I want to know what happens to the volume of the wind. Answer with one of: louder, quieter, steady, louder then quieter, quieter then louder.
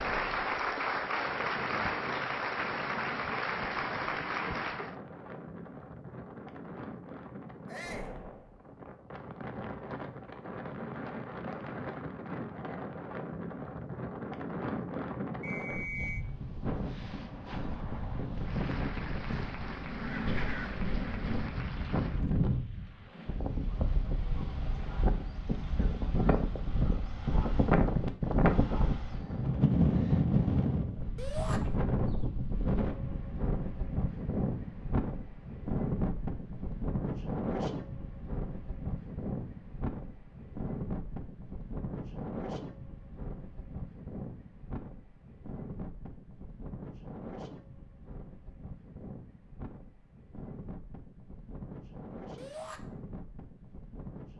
louder then quieter.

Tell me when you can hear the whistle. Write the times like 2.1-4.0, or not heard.
15.4-16.2.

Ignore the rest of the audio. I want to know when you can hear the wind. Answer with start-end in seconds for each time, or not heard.
0.0-54.3.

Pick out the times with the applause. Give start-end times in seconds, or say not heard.
0.0-5.0, 18.4-22.3.